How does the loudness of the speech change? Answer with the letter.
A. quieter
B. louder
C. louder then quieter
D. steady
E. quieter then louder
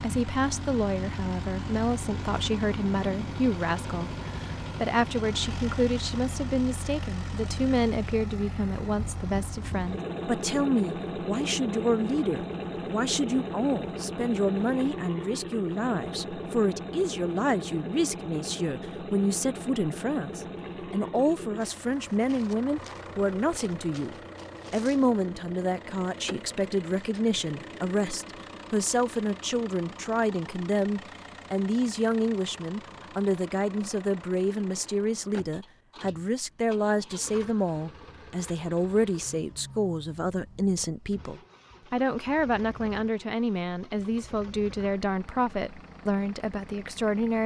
D.